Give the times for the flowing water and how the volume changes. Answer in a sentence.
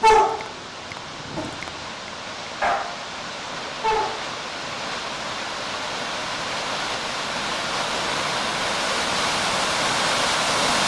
The flowing water can be heard from 0.0 to 10.8 s, getting louder.